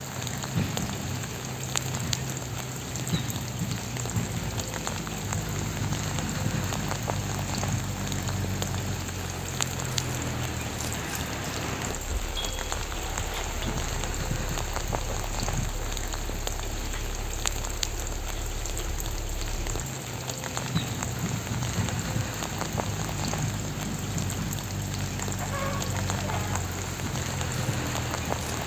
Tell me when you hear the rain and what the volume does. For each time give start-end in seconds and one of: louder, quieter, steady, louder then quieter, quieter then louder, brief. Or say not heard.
0.0-28.6 steady.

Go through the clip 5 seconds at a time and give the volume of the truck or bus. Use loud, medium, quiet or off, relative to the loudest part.
loud, loud, loud, medium, loud, loud.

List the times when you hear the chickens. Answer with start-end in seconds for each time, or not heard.
25.2-26.7.